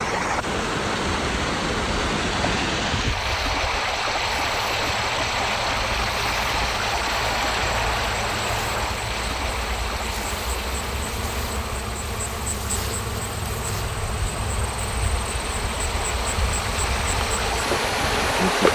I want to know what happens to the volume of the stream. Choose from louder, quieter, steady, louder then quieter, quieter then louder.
quieter then louder.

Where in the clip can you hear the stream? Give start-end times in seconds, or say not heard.
0.0-18.7.